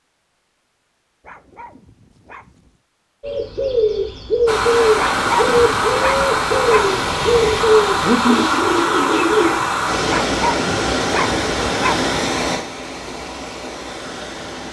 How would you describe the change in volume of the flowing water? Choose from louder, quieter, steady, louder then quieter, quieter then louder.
quieter.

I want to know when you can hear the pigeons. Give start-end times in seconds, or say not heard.
3.2-9.6.